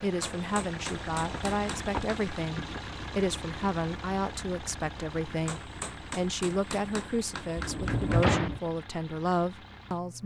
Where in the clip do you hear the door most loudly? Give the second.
8 s.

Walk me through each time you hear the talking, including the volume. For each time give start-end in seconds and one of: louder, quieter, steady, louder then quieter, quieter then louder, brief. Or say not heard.
0.0-10.2 steady.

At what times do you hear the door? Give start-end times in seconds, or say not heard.
1.3-2.9, 7.5-8.6.